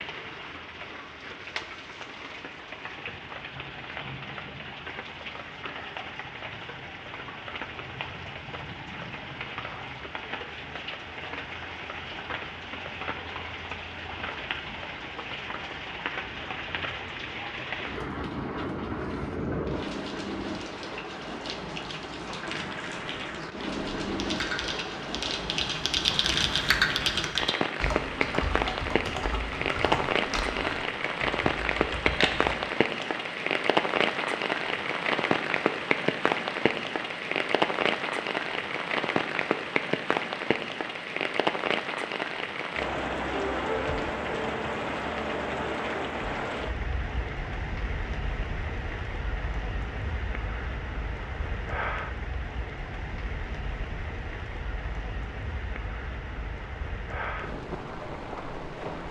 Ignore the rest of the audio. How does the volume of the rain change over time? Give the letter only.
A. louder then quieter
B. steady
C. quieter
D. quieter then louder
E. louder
A.